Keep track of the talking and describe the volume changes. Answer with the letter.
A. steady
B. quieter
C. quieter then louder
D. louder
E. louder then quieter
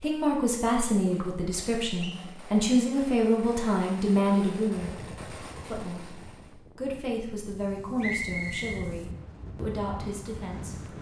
B.